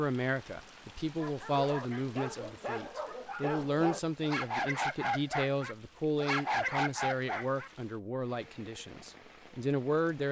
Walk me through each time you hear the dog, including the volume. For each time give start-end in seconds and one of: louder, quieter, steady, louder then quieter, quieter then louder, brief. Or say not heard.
1.1-7.7 louder.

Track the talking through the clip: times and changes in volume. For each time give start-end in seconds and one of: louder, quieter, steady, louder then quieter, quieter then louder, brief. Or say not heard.
0.0-10.2 steady.